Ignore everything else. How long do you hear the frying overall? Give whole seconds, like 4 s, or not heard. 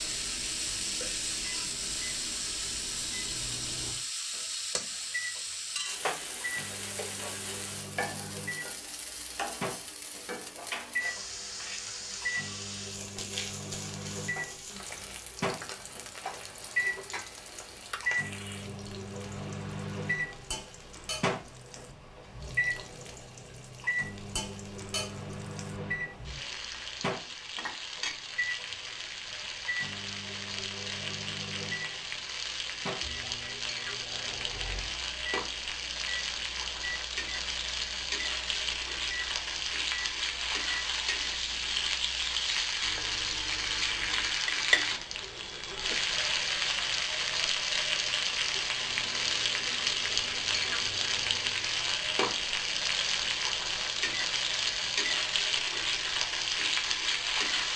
58 s.